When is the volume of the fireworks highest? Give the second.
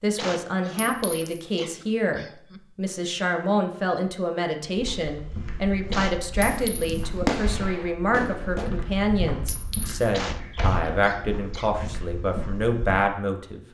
7 s.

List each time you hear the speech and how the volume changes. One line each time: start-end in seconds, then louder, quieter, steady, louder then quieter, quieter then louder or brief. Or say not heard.
0.0-13.6 steady.